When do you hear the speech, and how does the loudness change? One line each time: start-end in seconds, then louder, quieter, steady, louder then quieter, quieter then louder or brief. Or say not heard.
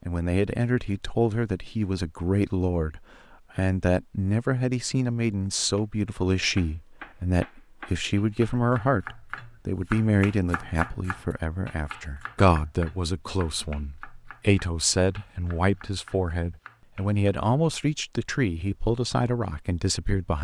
0.0-20.3 steady.